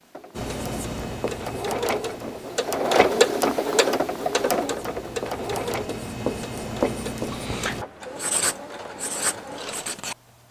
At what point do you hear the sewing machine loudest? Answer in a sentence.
The loudest moment of the sewing machine is at 3 seconds.